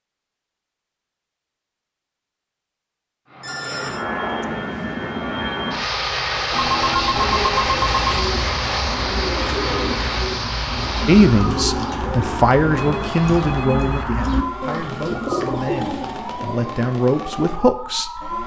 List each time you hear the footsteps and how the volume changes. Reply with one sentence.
The footsteps can't be heard in this clip.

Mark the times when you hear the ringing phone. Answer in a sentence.
The ringing phone can be heard from 3.4 to 4.0 s, from 6.5 to 8.2 s and from 12.8 to 14.1 s.